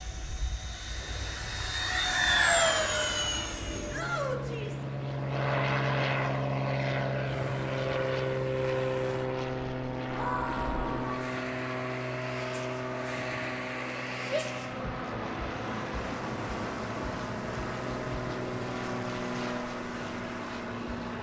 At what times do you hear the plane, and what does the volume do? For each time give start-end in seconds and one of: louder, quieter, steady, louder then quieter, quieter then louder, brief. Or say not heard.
0.0-21.1 quieter.